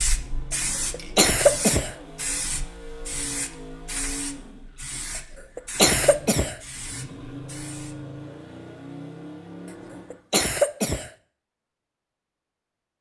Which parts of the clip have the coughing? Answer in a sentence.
The coughing can be heard from 0.9 to 1.9 s, from 5.5 to 6.5 s and from 10.1 to 11.1 s.